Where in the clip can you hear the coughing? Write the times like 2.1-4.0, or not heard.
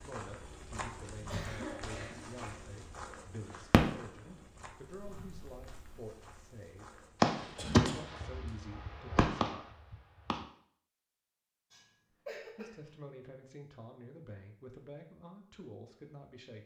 1.2-2.5, 7.5-8.5, 11.7-12.9.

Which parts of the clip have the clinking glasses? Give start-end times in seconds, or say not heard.
not heard.